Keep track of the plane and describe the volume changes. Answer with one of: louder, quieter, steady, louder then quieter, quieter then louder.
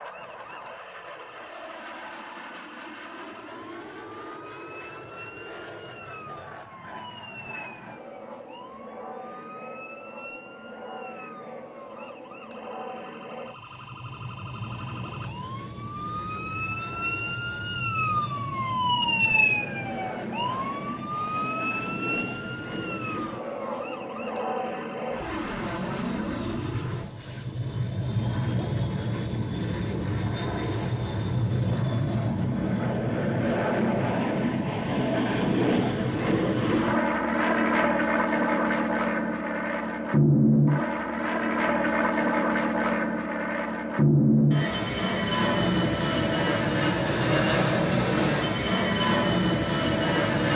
louder.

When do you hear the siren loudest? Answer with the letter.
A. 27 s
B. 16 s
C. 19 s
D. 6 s
C.